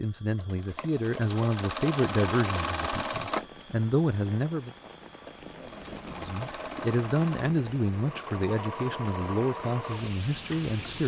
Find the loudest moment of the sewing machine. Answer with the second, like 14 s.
3 s.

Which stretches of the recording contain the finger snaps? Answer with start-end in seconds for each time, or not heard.
not heard.